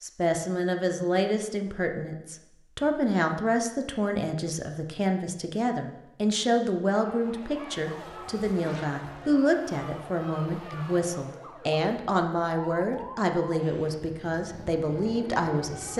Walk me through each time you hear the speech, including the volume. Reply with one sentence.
You can hear the speech from 0.0 to 15.9 s, at a steady volume.